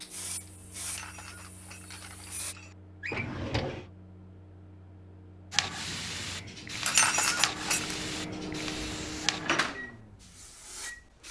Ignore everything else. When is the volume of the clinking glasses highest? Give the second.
7 s.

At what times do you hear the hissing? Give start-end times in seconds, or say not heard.
0.0-2.5, 5.5-11.2.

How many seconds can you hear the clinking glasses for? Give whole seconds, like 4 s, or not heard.
3 s.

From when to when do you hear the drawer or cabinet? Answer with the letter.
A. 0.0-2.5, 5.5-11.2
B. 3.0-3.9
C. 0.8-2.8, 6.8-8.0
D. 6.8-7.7
B.